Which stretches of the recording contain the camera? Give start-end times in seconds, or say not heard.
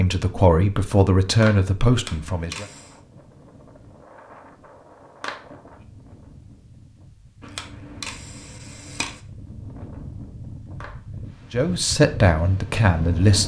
1.9-3.0, 7.4-9.2.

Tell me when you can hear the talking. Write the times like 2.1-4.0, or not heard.
0.0-2.6, 11.5-13.4.